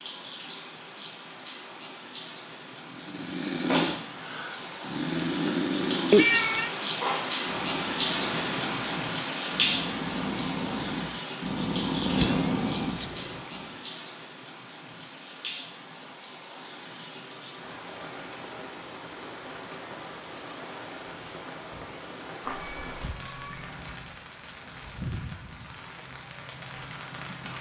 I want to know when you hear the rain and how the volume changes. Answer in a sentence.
The rain can be heard from 0.0 to 27.5 s, getting louder then quieter.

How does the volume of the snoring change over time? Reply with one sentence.
The loudness of the snoring goes down, then up.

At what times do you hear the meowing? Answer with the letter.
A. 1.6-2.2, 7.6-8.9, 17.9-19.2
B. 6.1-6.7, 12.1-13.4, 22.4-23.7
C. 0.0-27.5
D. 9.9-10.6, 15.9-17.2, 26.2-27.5
B.